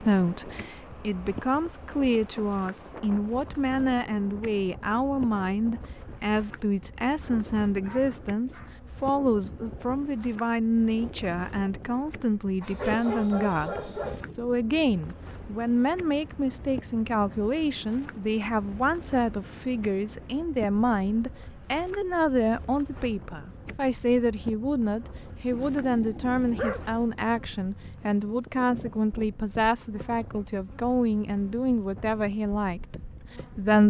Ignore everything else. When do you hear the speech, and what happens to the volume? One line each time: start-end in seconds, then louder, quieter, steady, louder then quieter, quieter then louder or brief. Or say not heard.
0.0-33.8 steady.